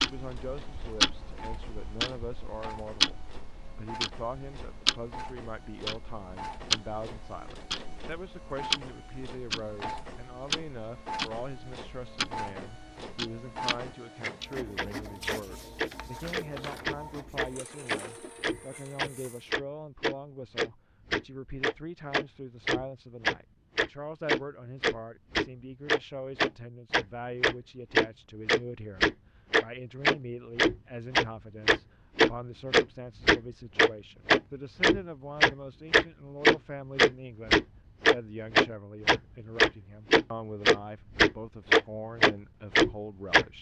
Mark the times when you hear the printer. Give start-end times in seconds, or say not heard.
0.0-19.4.